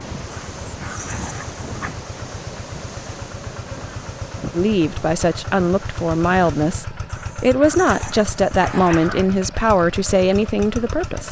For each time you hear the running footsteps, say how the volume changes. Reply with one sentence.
You can't hear the running footsteps here.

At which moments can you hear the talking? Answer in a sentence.
The talking can be heard from 4.5 to 11.2 s.